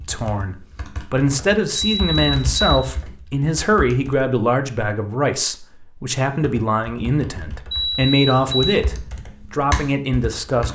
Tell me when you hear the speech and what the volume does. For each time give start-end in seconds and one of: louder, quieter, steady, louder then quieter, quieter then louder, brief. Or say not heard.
0.1-10.6 steady.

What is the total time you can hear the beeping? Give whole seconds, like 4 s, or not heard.
2 s.